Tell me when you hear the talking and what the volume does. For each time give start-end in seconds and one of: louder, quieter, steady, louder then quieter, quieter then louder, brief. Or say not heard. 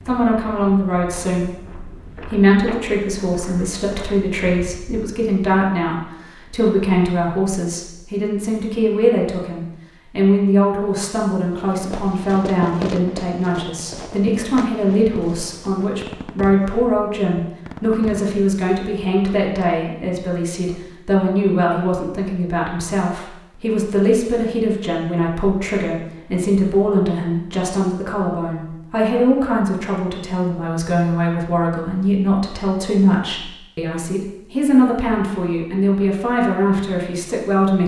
0.1-37.8 steady.